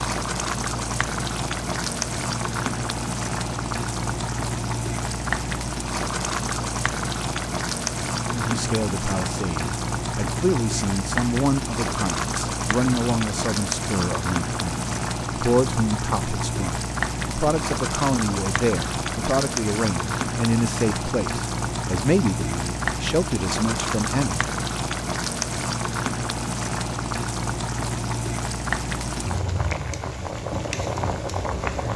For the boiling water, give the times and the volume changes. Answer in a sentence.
The boiling water can be heard from 0.0 to 31.9 s, at a steady volume.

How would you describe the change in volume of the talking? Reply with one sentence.
The loudness of the talking stays about the same.